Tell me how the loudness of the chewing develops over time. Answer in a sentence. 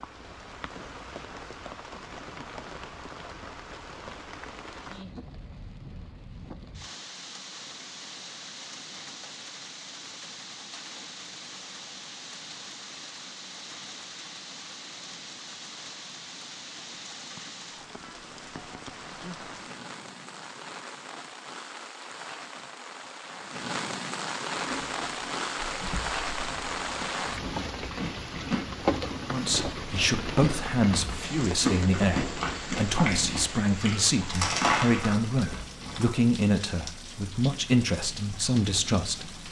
The volume of the chewing goes up.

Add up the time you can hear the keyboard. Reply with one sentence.
The keyboard can't be heard in this clip.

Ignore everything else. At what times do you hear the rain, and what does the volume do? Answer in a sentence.
You can hear the rain from 0.0 to 39.4 s, getting louder then quieter.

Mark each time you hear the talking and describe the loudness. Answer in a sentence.
The talking can be heard from 29.3 to 39.4 s, at a steady volume.